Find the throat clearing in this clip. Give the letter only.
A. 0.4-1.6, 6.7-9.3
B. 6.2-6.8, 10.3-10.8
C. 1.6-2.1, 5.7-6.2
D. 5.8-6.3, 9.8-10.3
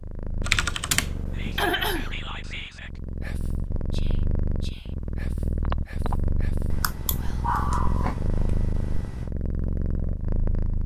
C.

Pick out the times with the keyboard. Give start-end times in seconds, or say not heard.
0.4-1.6, 6.7-9.3.